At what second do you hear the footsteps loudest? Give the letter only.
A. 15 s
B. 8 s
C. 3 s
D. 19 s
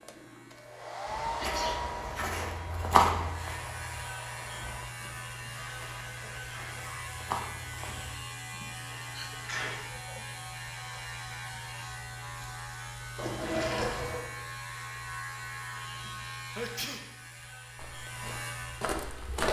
C.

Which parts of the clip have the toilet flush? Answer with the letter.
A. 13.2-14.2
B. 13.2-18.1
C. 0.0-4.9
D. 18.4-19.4
A.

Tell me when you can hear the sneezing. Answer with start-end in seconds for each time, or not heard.
1.4-1.9, 8.5-10.2, 16.4-17.1.